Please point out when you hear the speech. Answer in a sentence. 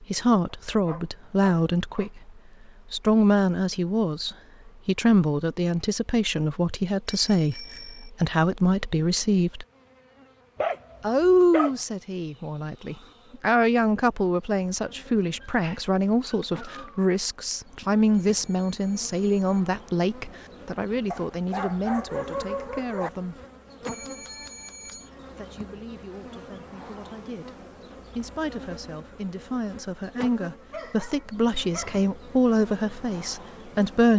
You can hear the speech from 0.0 to 2.3 s, from 2.9 to 9.7 s, from 11.0 to 23.4 s and from 24.9 to 34.1 s.